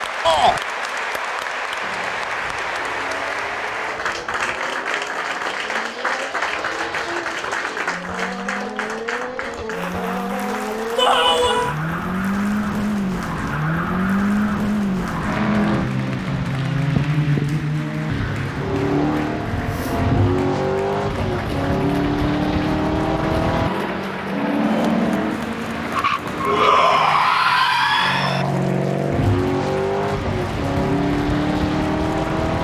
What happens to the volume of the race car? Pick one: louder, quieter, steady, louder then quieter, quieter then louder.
louder.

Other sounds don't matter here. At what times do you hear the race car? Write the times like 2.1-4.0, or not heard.
1.8-32.5.